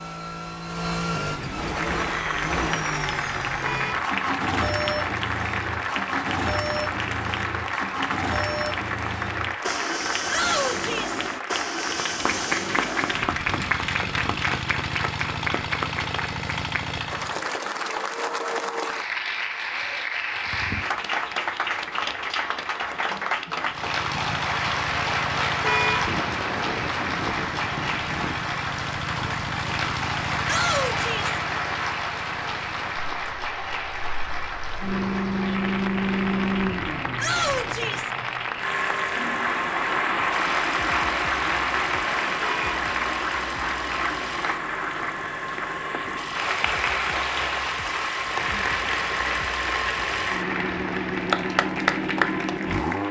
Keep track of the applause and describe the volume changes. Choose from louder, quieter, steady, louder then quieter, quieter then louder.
steady.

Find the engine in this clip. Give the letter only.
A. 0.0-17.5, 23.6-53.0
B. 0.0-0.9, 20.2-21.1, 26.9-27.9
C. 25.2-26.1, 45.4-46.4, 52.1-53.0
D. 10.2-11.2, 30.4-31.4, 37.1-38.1
A.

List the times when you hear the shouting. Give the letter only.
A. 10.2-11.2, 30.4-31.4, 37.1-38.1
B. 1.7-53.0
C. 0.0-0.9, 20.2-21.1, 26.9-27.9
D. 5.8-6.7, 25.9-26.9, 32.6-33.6
A.